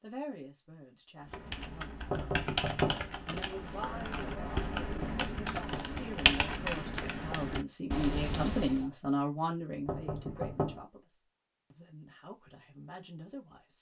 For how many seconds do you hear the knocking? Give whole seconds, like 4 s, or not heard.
3 s.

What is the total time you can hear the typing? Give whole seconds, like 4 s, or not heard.
8 s.